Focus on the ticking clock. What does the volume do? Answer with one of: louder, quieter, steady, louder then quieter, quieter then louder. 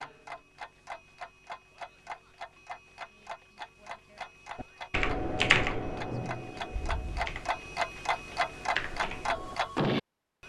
louder.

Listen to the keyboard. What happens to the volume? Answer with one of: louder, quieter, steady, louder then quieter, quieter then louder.
quieter then louder.